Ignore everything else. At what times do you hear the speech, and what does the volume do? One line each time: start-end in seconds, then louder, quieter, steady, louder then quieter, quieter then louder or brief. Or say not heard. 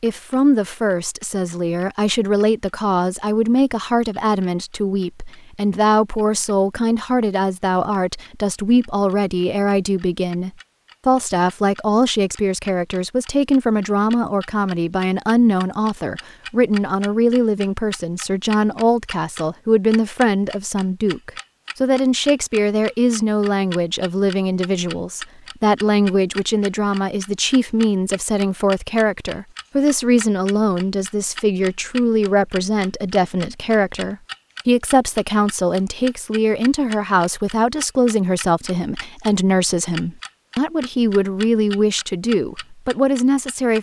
0.0-43.7 steady.